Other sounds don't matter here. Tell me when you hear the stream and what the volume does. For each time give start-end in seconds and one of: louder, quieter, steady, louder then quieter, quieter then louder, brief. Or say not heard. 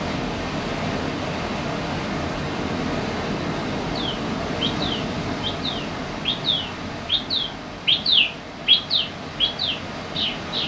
0.0-10.6 quieter.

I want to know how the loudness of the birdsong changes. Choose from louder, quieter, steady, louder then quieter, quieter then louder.
louder then quieter.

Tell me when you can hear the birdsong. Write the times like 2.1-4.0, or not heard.
3.9-10.6.